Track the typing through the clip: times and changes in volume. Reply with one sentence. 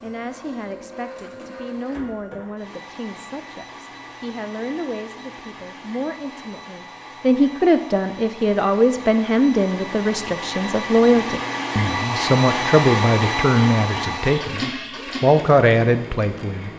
You can't hear the typing here.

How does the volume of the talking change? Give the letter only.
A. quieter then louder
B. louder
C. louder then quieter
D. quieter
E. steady
B.